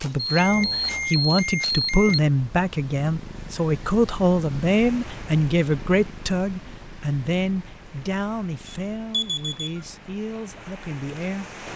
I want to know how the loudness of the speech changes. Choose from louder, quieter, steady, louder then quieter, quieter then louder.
quieter.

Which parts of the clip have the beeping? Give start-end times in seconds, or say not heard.
0.2-2.2, 8.7-9.8.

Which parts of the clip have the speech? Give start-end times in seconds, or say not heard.
0.0-11.5.